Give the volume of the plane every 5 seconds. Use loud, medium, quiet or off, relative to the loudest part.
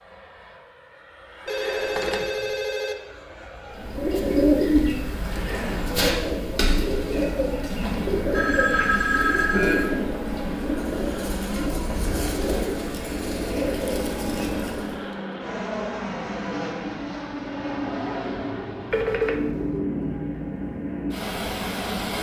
quiet, medium, loud, loud, loud.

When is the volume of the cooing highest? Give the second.
5 s.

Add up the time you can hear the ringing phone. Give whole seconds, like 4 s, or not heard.
4 s.